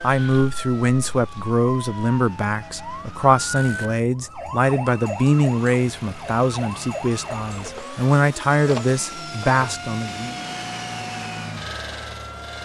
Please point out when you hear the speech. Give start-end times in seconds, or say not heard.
0.0-10.3.